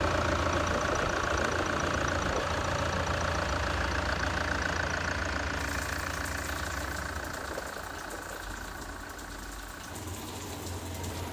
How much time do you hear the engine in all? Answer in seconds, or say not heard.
11 s.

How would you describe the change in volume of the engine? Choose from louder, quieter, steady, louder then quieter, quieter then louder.
quieter.